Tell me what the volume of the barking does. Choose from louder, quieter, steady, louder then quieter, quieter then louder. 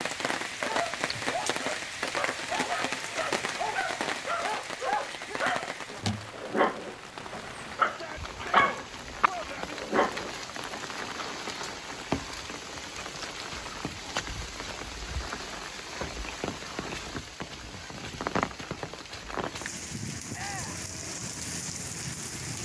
louder.